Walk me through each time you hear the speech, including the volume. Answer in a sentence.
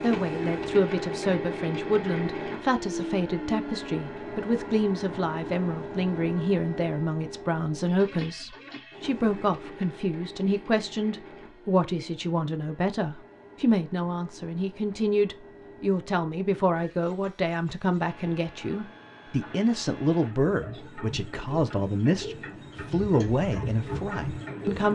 The speech can be heard from 0.0 to 24.9 s, at a steady volume.